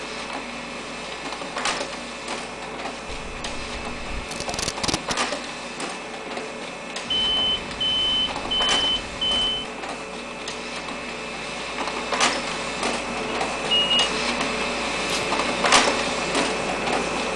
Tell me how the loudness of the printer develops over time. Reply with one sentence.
The volume of the printer goes up.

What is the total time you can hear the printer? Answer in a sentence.
You can hear the printer for 17 seconds altogether.